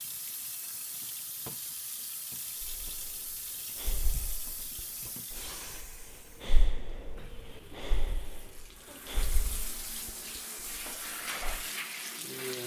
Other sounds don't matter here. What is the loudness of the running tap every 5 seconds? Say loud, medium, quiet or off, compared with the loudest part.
medium, medium, loud.